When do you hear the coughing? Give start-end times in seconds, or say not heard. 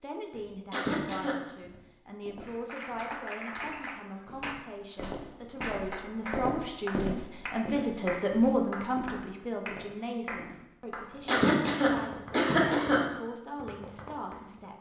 0.7-1.4, 11.2-13.0.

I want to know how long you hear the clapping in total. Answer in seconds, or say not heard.
12 s.